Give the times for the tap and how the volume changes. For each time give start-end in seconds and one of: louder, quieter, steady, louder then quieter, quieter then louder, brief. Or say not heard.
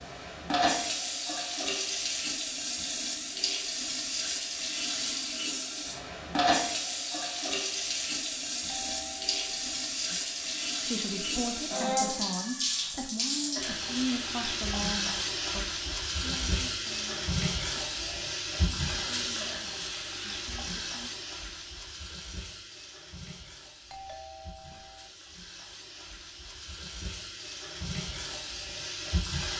0.0-29.5 quieter.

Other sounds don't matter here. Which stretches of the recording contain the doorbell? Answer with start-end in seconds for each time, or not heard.
8.7-9.8, 23.9-25.1.